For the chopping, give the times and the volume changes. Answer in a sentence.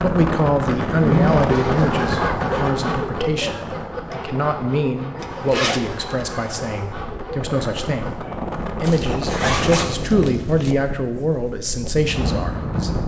You can't hear the chopping here.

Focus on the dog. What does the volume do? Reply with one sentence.
The loudness of the dog goes down.